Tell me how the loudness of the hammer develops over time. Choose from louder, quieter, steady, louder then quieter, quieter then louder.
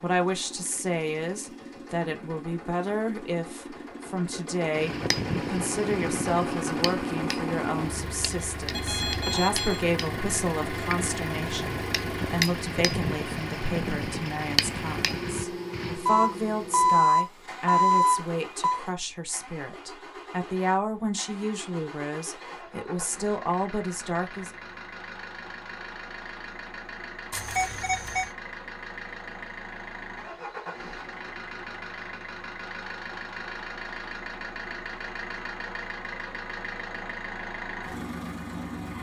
quieter then louder.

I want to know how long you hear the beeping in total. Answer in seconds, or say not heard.
5 s.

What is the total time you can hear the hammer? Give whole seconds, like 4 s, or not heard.
11 s.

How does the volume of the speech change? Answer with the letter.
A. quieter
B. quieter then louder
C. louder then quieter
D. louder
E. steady
E.